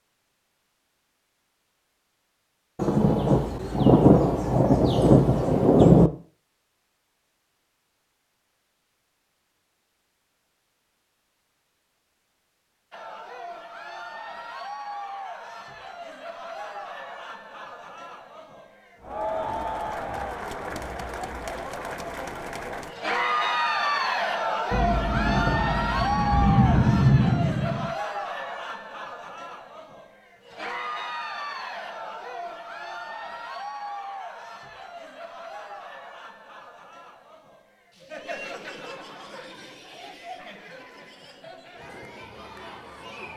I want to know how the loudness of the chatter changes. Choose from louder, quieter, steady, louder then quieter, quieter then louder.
louder then quieter.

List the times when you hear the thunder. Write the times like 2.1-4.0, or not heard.
2.8-6.1, 24.7-27.9.